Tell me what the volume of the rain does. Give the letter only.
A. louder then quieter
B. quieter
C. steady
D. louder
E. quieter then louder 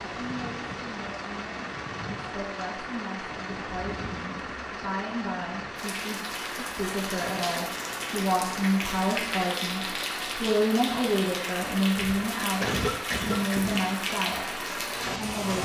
D.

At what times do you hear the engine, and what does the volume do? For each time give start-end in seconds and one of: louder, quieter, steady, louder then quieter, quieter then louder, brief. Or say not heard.
0.0-15.6 steady.